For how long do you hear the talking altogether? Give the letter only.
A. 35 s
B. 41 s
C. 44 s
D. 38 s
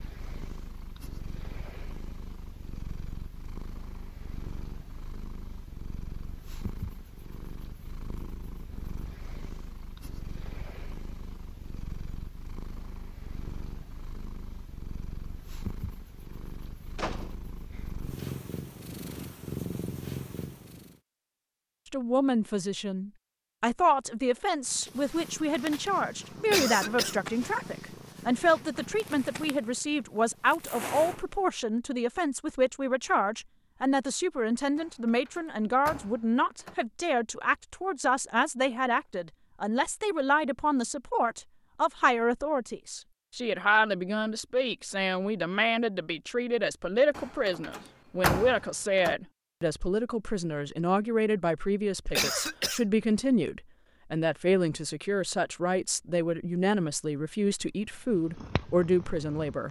D.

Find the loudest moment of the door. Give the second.
48 s.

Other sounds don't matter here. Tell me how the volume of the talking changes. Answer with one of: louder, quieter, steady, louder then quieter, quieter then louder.
steady.